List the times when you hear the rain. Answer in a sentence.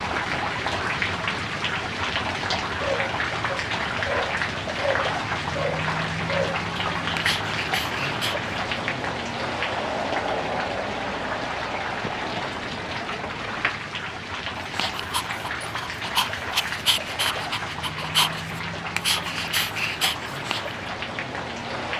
The rain can be heard from 0.0 to 21.9 s.